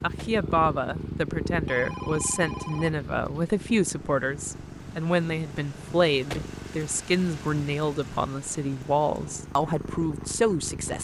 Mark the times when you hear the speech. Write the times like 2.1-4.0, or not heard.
0.0-11.0.